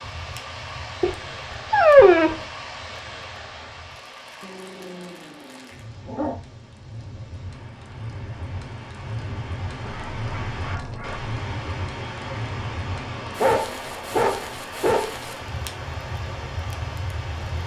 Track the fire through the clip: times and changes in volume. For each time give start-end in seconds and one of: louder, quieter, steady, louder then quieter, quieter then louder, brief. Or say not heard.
0.0-17.6 louder.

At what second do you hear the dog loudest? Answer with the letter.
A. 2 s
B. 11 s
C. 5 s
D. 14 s
A.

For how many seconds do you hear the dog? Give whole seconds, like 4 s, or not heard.
7 s.